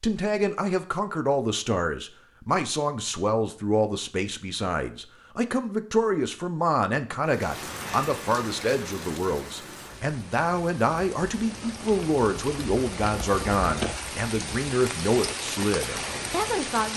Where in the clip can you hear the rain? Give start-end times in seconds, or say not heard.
7.2-16.9.